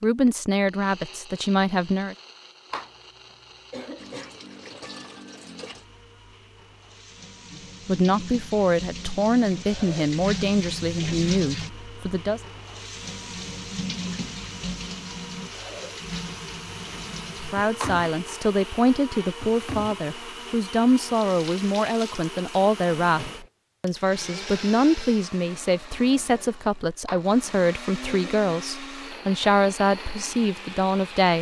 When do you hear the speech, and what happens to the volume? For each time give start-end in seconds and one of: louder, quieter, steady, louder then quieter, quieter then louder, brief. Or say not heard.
0.0-2.1 brief
7.8-12.4 steady
17.4-31.3 steady.